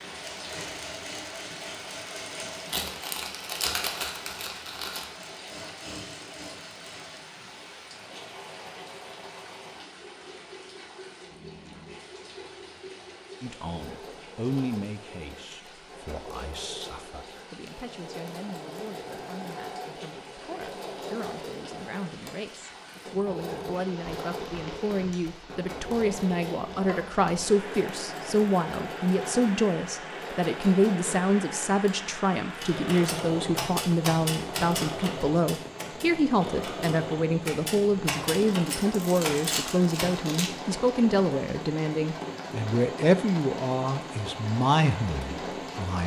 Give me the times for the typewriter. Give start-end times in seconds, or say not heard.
32.6-40.1.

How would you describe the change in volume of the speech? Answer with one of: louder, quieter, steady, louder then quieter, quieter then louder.
louder.